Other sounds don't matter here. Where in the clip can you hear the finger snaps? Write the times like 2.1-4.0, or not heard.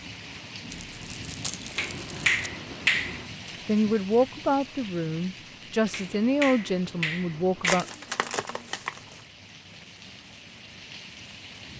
1.8-3.2, 5.9-7.8.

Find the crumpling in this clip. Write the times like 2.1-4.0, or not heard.
0.7-2.4, 7.6-9.2.